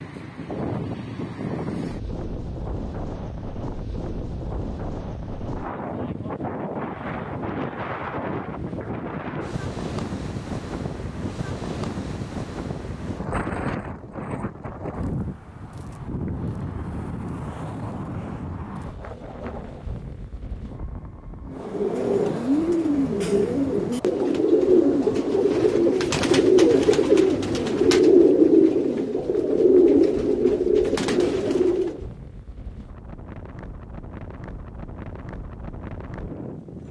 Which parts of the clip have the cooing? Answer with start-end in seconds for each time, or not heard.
21.4-32.0.